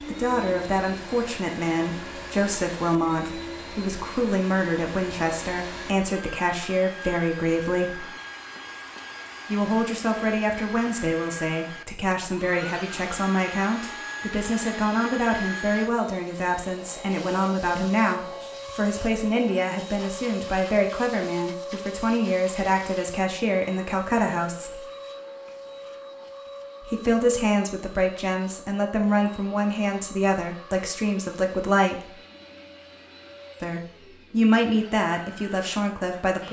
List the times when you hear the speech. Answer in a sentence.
You can hear the speech from 0.0 to 8.1 s, from 9.4 to 24.8 s, from 26.8 to 32.1 s and from 33.6 to 36.4 s.